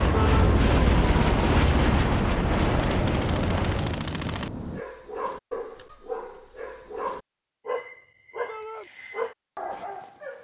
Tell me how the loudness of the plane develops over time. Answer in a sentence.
The loudness of the plane goes down.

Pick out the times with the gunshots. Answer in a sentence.
The gunshots can be heard from 2.5 to 4.5 s.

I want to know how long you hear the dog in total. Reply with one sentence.
The dog can be heard for 6 seconds in total.